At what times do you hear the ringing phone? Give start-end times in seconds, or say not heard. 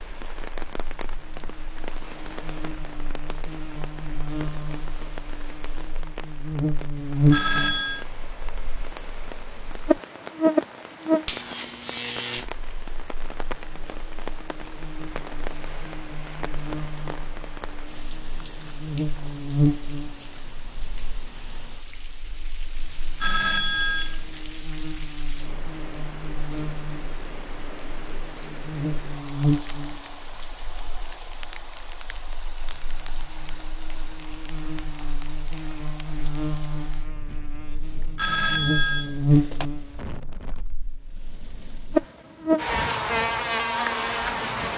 7.3-8.1, 23.2-24.4, 38.1-39.6.